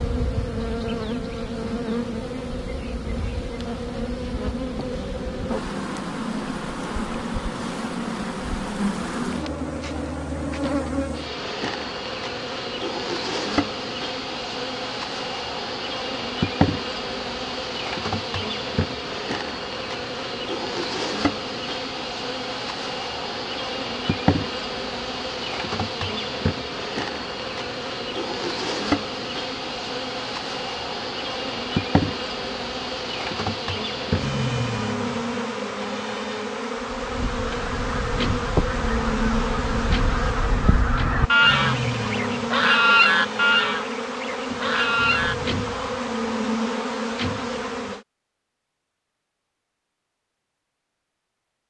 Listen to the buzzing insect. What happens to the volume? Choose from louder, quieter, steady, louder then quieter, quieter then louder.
steady.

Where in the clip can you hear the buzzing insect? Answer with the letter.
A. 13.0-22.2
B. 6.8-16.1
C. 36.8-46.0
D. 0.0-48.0
D.